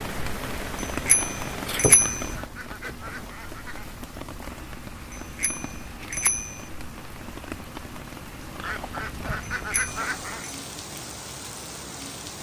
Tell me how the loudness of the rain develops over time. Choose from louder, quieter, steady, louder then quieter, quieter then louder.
quieter.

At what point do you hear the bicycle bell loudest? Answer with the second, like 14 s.
2 s.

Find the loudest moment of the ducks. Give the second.
10 s.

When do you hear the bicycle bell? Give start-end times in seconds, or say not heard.
1.1-2.3, 5.1-6.6, 9.4-10.6.